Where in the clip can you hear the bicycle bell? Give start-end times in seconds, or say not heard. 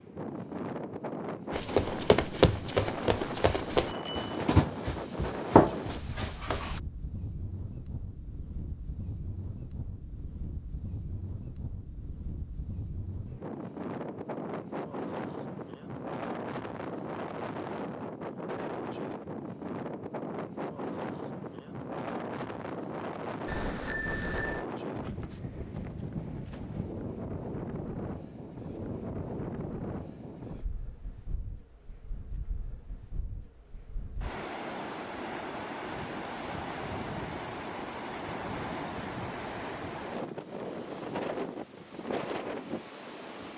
3.9-4.4, 23.4-24.6.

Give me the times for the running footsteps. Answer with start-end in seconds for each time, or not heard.
1.5-6.8.